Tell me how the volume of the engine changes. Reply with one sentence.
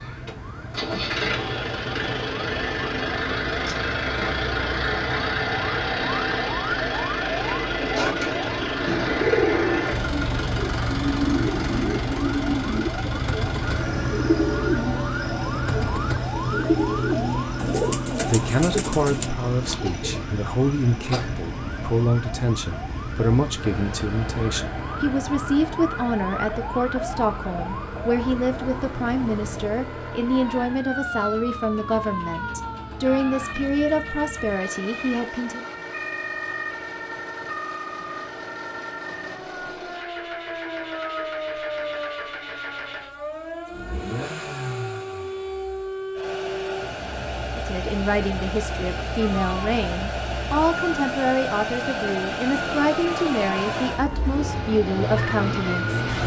The loudness of the engine goes down, then up.